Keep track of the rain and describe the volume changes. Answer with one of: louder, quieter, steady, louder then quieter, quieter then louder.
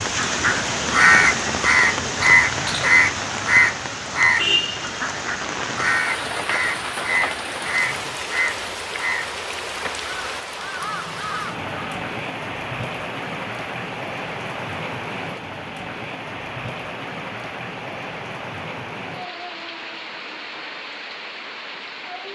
quieter.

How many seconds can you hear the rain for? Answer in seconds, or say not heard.
22 s.